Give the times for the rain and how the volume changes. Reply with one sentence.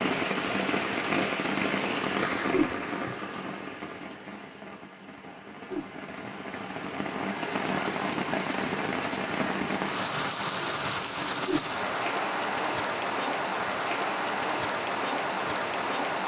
The rain can be heard from 0.0 to 16.2 s, getting quieter then louder.